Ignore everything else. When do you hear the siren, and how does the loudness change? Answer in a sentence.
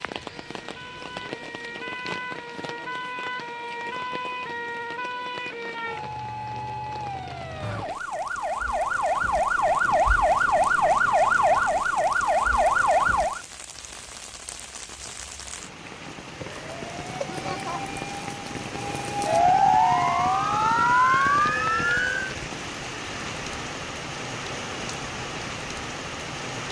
The siren can be heard from 0.0 to 13.4 s, getting louder; and from 16.4 to 22.4 s, getting louder.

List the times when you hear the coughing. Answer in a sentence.
You can hear the coughing from 17.2 to 17.9 s.